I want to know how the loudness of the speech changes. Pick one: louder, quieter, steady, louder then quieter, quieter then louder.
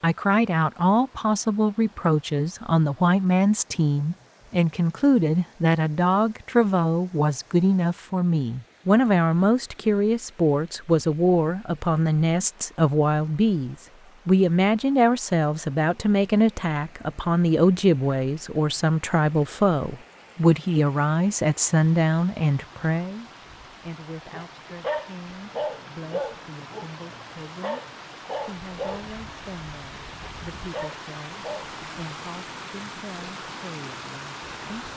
quieter.